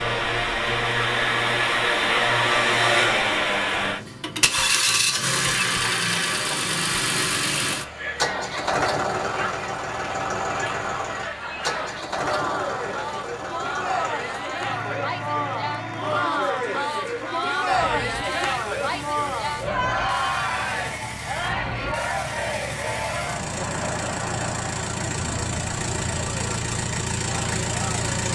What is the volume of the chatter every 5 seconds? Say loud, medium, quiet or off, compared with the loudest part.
off, medium, medium, loud, loud, medium.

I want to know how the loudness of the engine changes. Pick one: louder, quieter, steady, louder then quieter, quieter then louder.
quieter then louder.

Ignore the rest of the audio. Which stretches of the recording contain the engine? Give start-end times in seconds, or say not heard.
0.0-28.3.